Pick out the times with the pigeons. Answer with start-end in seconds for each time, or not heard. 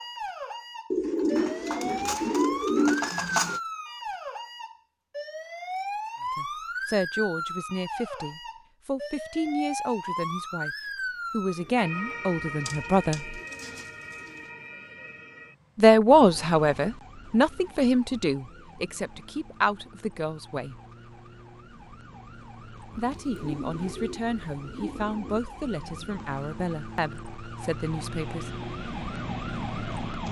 0.9-3.6, 12.4-14.4, 22.9-25.4.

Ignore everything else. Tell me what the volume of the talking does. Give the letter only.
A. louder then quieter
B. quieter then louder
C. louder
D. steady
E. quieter
A.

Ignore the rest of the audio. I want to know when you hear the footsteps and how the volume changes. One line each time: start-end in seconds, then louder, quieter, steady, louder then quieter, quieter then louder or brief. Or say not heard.
not heard.